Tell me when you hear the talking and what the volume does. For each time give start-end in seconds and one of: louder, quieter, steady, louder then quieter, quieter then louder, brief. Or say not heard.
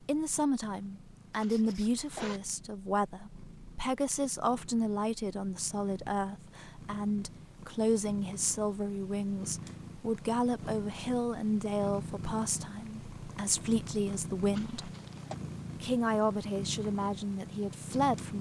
0.1-14.9 steady
15.8-18.3 brief.